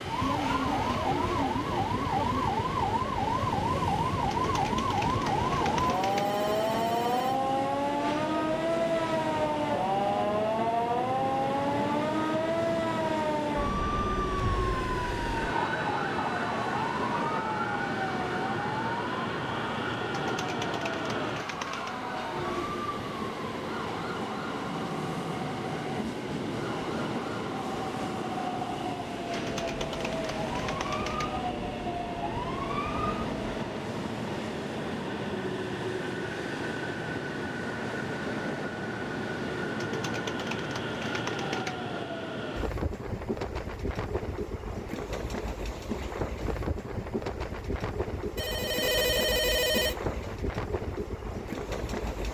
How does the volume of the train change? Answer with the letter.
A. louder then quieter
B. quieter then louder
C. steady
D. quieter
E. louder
C.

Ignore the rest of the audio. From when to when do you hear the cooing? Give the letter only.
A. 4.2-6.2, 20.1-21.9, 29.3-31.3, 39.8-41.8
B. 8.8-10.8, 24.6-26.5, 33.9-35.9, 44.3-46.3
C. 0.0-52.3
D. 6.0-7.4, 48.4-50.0
A.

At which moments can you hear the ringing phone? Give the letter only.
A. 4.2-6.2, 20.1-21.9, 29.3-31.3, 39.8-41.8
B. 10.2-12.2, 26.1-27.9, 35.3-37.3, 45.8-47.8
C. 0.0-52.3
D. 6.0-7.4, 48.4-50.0
D.